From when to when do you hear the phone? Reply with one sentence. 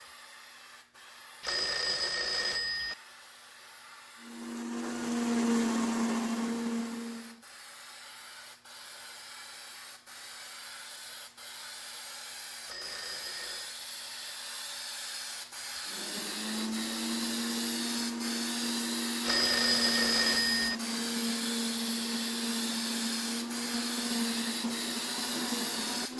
The phone can be heard from 1.4 to 3.0 s, from 12.7 to 13.8 s and from 19.2 to 20.8 s.